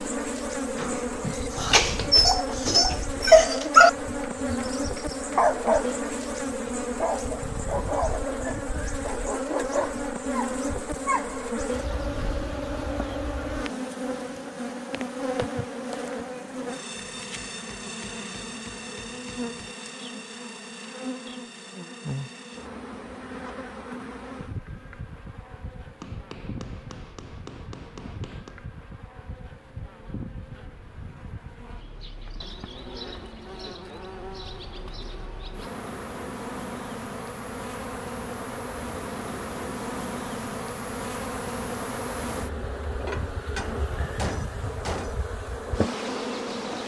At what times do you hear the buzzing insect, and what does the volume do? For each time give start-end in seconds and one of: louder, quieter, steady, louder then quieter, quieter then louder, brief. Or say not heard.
0.0-46.8 quieter then louder.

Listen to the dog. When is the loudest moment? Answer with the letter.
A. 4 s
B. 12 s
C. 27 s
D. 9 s
A.